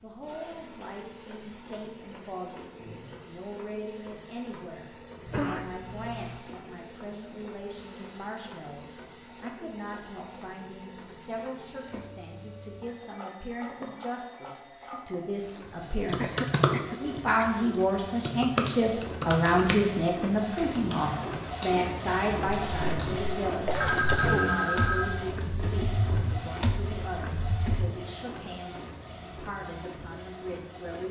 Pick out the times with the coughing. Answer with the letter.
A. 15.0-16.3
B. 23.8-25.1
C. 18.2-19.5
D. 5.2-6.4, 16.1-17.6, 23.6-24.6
D.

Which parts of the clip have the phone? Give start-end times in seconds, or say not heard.
23.8-25.1.